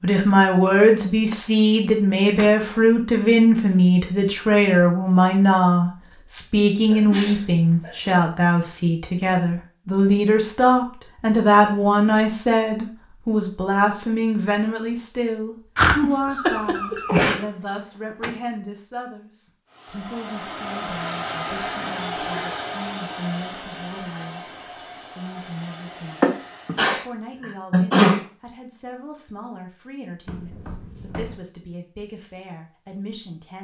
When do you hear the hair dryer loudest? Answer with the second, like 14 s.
22 s.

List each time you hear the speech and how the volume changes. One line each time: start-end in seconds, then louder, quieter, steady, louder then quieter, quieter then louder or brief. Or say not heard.
0.0-33.6 quieter.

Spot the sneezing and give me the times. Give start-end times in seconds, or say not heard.
6.9-8.2, 15.8-17.4, 26.2-27.0, 27.7-28.2.